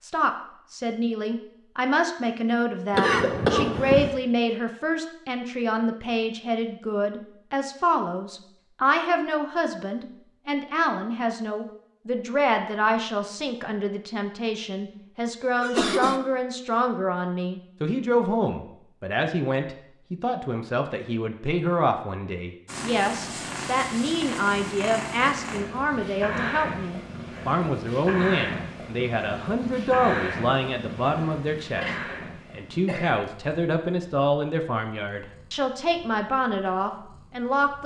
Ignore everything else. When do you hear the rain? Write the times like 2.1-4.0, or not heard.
not heard.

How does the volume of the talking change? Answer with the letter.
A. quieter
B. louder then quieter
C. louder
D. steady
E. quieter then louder
D.